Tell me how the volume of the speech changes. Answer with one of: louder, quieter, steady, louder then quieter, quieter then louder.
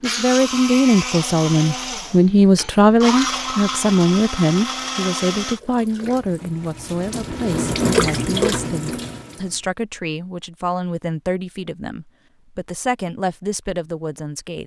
quieter.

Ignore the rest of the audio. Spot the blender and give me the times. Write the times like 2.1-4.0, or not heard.
0.0-5.6.